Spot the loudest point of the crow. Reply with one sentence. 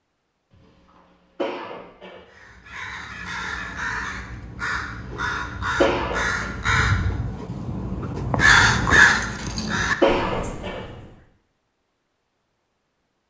The loudest moment of the crow is at 9 seconds.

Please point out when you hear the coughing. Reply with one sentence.
The coughing can be heard from 1.4 to 2.2 s, from 5.8 to 6.5 s and from 10.0 to 10.8 s.